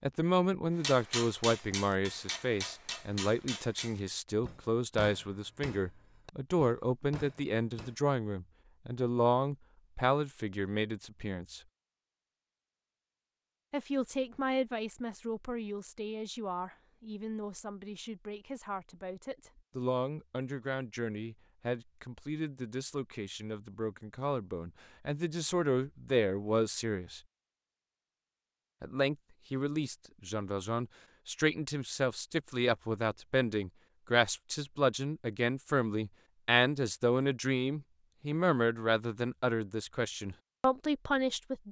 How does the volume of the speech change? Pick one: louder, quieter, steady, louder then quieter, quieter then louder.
quieter then louder.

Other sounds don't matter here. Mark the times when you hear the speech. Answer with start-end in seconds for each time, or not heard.
0.0-11.6, 13.7-27.2, 28.8-41.6.